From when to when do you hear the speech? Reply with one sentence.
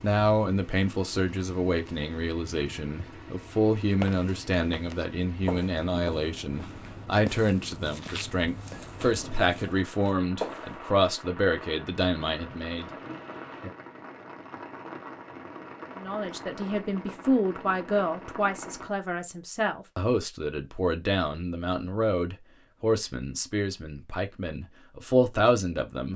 The speech can be heard from 0.0 to 12.9 s and from 15.9 to 26.1 s.